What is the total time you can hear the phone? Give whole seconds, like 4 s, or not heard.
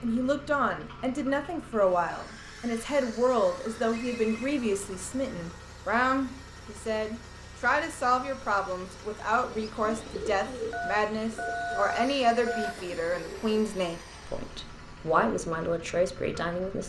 4 s.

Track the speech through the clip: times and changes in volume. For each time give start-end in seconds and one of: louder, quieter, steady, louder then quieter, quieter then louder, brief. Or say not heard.
0.0-16.8 steady.